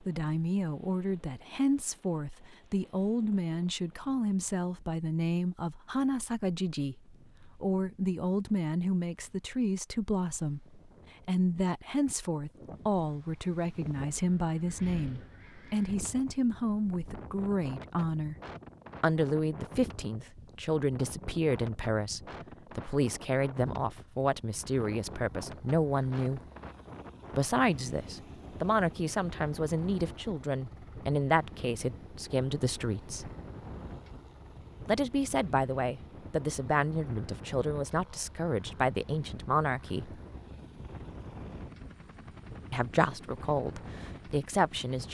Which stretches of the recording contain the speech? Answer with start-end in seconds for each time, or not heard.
0.1-18.4, 19.0-26.4, 27.3-33.3, 34.9-40.1, 42.7-45.1.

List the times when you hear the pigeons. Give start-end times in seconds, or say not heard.
not heard.